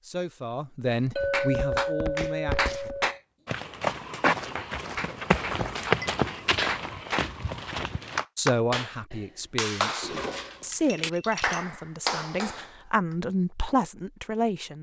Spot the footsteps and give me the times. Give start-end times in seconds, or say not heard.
1.2-8.2.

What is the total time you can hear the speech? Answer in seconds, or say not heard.
9 s.